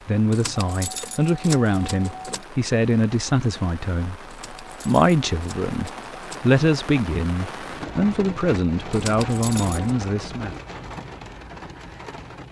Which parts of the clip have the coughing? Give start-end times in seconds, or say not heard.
not heard.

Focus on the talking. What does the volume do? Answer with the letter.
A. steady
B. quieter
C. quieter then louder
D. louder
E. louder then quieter
A.